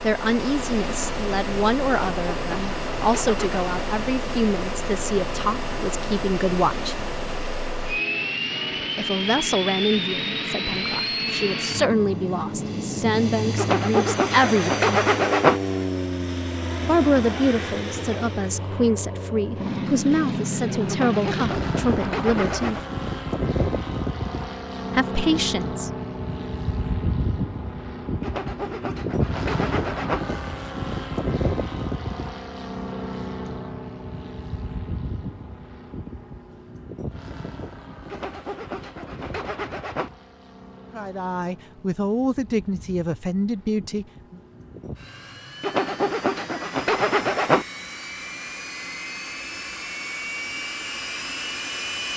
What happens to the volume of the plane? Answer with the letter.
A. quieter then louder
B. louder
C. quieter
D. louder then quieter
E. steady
C.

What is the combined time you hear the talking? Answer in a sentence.
You can hear the talking for 23 seconds altogether.